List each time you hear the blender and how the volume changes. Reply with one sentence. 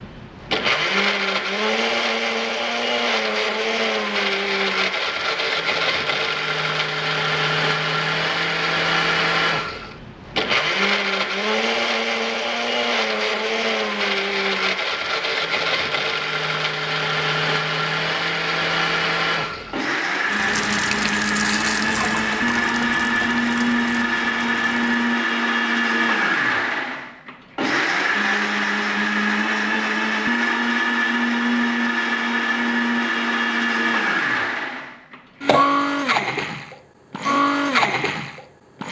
The blender can be heard from 0.0 to 38.8 s, at a steady volume.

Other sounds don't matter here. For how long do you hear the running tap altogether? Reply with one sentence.
You can hear the running tap for 5 seconds altogether.